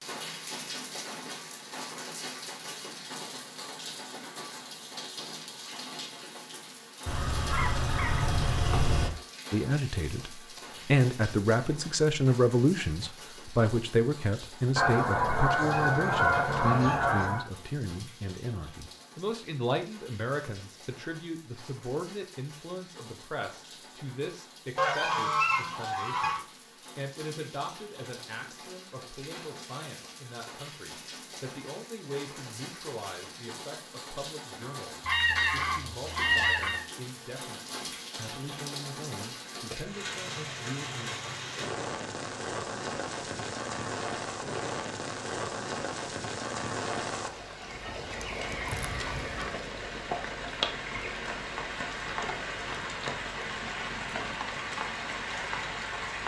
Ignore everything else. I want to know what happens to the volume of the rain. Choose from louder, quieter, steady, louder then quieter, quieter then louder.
quieter then louder.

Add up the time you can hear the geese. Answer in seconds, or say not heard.
10 s.